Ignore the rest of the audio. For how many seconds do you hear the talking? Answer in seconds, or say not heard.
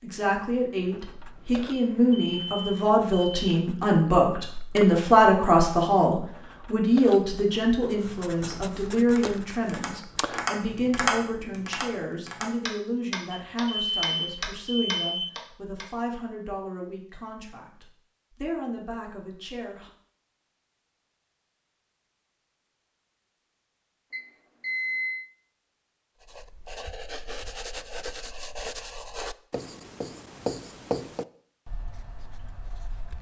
20 s.